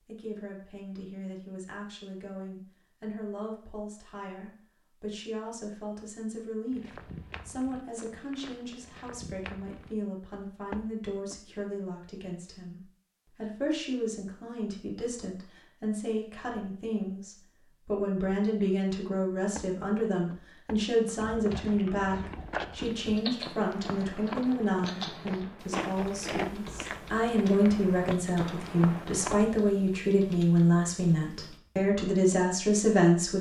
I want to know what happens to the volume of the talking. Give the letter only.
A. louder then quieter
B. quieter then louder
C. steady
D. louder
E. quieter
D.